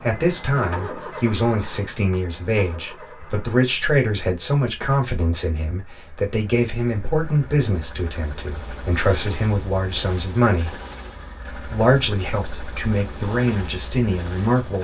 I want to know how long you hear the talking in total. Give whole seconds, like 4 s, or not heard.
14 s.